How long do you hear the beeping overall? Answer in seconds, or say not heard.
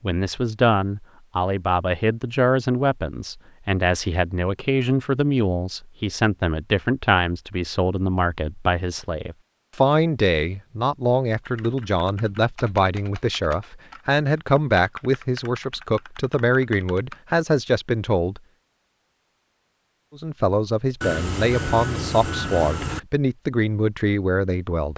2 s.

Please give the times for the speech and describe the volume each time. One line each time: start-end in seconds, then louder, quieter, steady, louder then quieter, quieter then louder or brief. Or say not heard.
0.0-18.4 steady
20.1-24.9 steady.